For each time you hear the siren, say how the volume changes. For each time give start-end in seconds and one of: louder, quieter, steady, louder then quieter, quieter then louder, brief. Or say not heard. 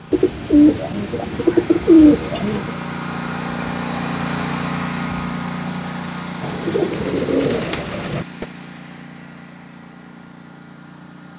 not heard.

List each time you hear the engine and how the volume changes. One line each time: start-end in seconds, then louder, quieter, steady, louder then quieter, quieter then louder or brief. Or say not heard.
0.0-11.3 louder then quieter.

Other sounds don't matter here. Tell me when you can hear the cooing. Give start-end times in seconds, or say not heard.
0.1-2.7, 6.4-8.4.